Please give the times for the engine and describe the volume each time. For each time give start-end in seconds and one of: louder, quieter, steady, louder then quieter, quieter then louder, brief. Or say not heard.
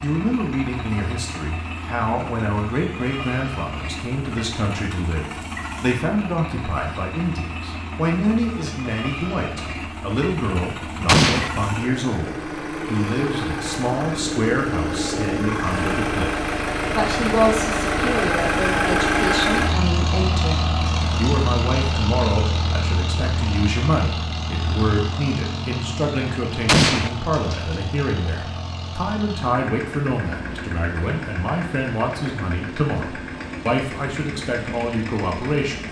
0.0-35.8 louder then quieter.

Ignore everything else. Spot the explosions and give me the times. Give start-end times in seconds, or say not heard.
11.1-11.5, 26.6-27.1.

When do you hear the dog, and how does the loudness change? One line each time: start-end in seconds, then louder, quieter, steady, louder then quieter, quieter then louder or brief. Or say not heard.
not heard.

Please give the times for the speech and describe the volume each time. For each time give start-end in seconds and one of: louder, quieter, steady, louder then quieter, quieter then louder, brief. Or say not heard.
0.0-35.8 steady.